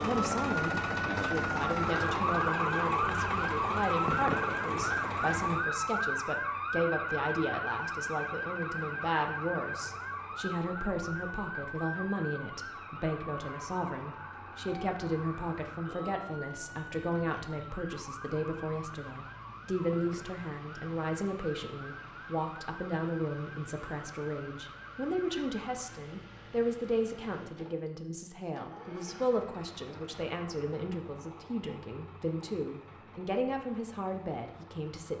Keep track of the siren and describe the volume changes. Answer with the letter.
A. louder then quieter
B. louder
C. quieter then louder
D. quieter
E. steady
D.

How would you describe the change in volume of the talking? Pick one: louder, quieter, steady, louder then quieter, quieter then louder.
steady.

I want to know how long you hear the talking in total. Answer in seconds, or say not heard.
35 s.